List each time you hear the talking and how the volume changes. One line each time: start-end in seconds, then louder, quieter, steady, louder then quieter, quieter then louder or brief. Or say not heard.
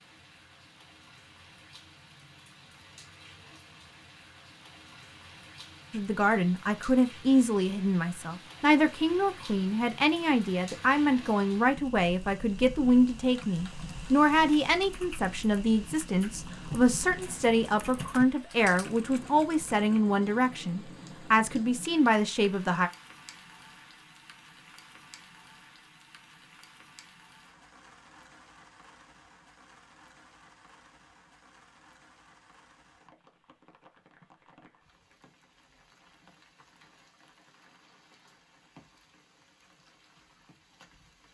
5.9-22.9 steady.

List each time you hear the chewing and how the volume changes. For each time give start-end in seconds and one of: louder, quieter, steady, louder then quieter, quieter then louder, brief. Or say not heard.
not heard.